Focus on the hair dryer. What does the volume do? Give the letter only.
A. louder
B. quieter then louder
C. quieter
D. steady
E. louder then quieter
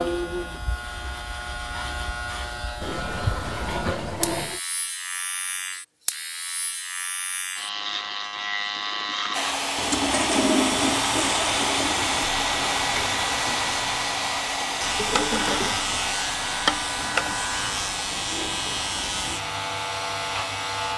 C.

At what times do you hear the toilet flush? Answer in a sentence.
You can hear the toilet flush from 2.8 to 4.6 s, from 9.8 to 12.3 s and from 14.9 to 17.4 s.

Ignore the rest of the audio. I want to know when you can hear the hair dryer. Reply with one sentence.
The hair dryer can be heard from 9.3 to 20.9 s.